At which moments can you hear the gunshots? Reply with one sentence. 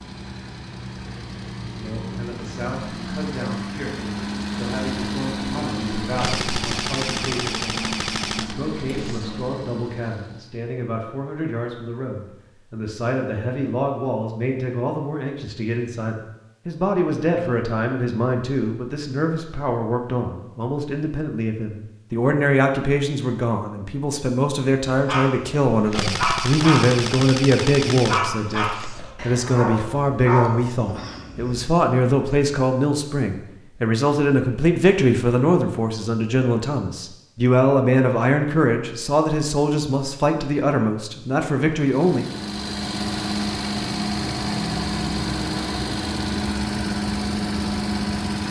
The gunshots can be heard from 6.0 to 9.4 s and from 25.7 to 29.3 s.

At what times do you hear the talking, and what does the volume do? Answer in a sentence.
You can hear the talking from 1.8 to 42.2 s, getting louder.